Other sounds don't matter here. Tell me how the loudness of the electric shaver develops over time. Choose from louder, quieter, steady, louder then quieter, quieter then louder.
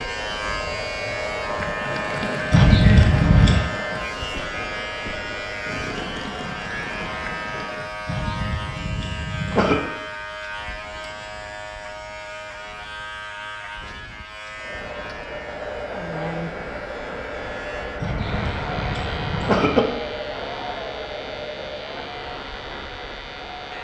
quieter.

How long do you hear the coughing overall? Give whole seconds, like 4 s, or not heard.
5 s.